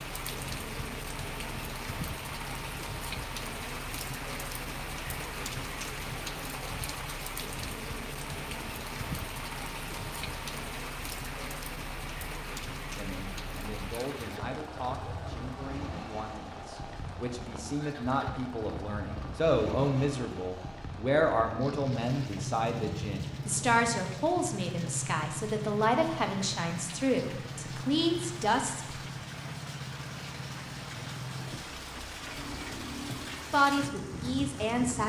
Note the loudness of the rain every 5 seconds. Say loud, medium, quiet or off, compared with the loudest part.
loud, loud, loud, medium, medium, medium, loud.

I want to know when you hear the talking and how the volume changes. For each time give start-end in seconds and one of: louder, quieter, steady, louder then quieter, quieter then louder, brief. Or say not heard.
12.9-28.9 louder
33.5-35.0 brief.